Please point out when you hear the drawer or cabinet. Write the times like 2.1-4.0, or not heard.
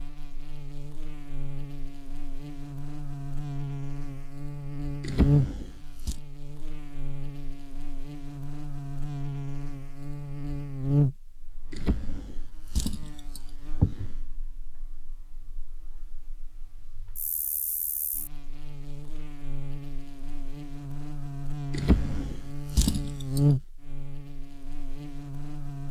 5.0-6.2, 11.7-14.2, 21.7-23.4.